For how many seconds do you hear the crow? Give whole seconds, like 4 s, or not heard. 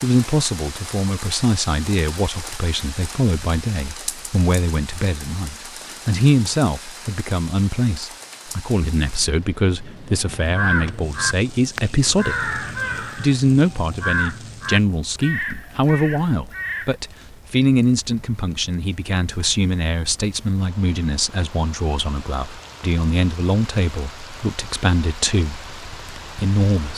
7 s.